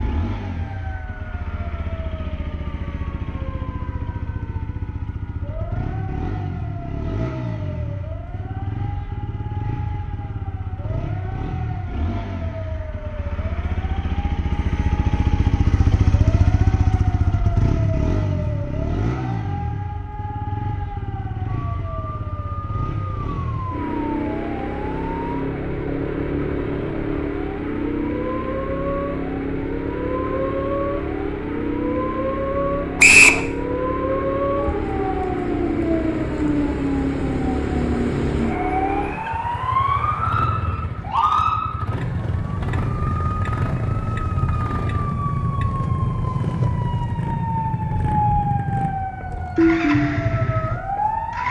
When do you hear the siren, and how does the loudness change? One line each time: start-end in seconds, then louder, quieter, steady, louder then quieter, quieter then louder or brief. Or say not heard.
0.0-51.4 louder.